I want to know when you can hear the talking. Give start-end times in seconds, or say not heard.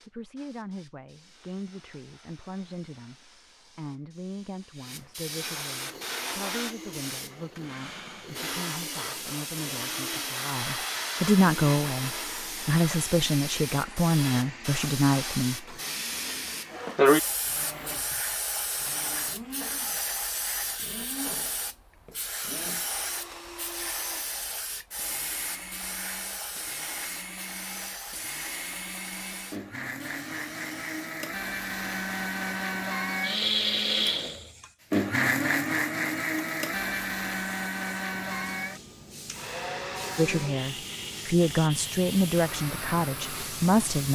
0.1-15.8, 40.1-44.0.